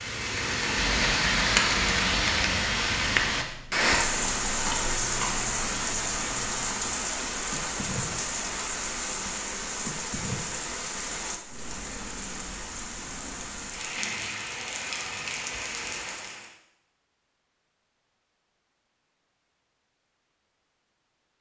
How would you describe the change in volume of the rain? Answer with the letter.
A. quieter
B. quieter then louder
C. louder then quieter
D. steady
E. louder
A.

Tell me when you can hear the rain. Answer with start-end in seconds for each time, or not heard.
0.0-16.6.